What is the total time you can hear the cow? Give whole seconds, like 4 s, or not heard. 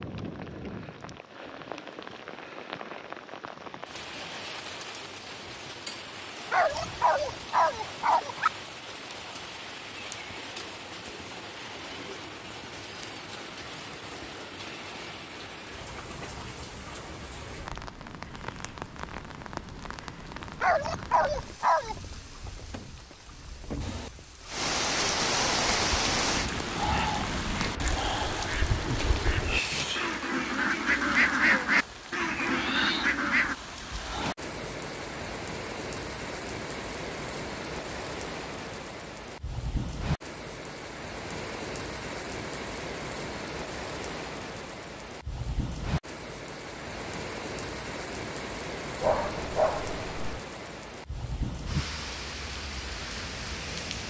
not heard.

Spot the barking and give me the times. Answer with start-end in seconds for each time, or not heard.
6.5-8.5, 20.6-21.9, 49.0-50.4.